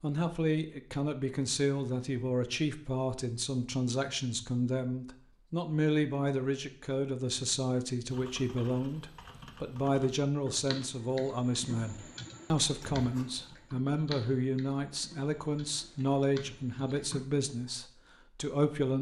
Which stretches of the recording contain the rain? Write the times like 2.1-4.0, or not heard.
not heard.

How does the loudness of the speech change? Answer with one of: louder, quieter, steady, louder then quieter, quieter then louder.
steady.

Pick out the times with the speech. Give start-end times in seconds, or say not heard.
0.0-18.9.